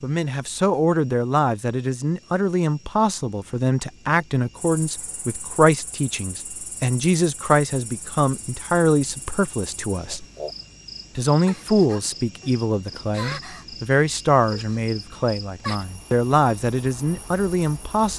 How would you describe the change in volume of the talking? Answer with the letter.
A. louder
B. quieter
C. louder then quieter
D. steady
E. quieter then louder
D.